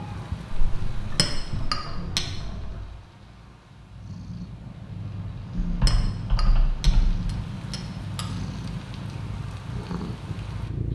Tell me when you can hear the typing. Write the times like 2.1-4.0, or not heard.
0.5-2.9, 5.6-7.2.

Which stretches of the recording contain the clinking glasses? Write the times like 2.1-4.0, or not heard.
1.1-2.2, 5.8-8.2.